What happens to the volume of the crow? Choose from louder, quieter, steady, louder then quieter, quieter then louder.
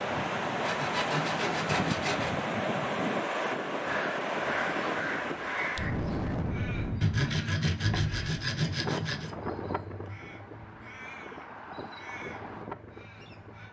quieter.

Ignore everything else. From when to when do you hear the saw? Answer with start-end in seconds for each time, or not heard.
0.6-2.3, 7.0-9.3.